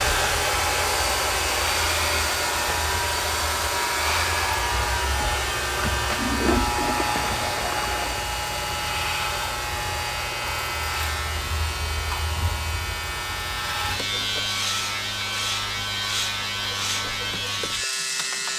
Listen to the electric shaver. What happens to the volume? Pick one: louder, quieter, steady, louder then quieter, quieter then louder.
steady.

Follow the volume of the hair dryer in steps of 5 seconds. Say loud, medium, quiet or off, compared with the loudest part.
loud, medium, medium, quiet.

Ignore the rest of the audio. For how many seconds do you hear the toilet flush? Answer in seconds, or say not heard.
2 s.